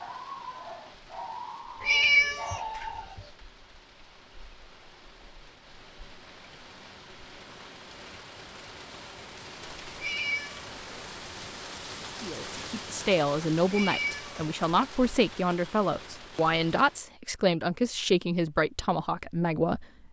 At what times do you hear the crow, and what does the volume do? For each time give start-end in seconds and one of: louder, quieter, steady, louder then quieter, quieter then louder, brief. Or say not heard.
not heard.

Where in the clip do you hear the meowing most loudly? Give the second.
2 s.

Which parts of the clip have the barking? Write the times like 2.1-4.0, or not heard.
0.0-3.2.